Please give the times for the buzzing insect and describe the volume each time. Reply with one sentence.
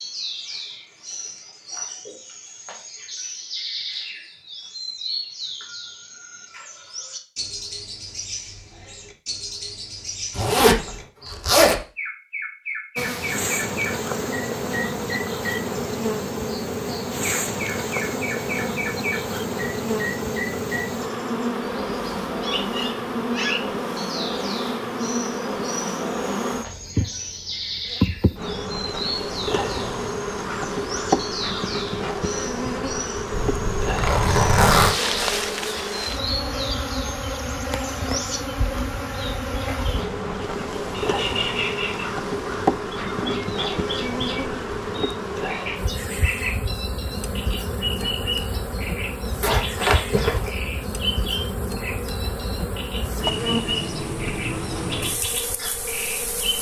The buzzing insect can be heard from 12.9 to 56.5 s, at a steady volume.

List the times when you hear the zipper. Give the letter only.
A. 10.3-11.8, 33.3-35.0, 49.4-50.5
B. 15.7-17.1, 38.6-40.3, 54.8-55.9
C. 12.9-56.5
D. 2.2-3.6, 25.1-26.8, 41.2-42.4
A.